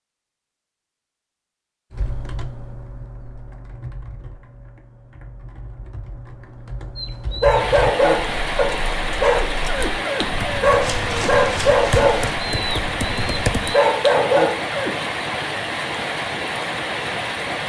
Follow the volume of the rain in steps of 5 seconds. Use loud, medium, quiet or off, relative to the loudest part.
off, loud, loud, loud.